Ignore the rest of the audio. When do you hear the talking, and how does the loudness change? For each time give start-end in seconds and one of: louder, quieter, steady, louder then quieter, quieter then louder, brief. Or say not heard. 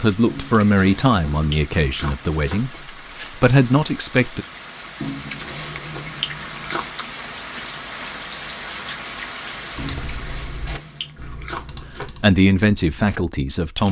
0.0-4.5 quieter then louder
12.0-13.8 brief.